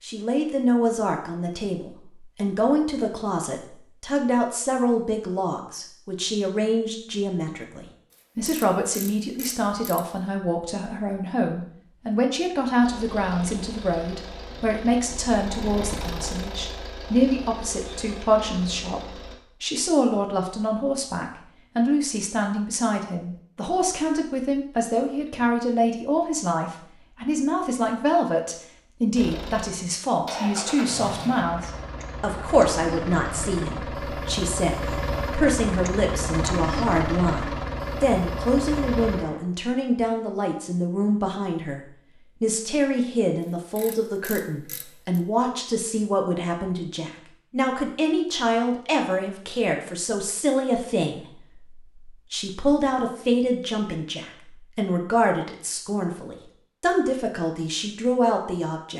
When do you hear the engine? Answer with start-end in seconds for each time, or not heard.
12.8-19.4, 29.1-39.4.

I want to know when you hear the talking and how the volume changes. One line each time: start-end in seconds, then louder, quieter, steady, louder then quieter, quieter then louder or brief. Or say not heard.
0.0-58.9 steady.